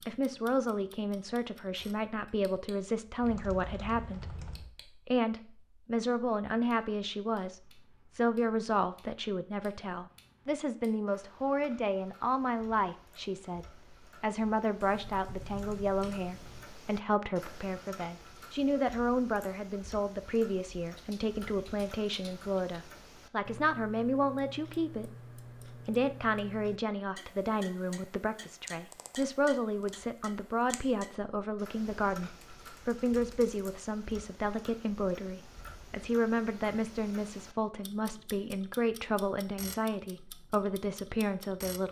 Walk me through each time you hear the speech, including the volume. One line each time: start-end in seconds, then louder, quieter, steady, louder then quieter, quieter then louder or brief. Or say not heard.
0.1-41.8 steady.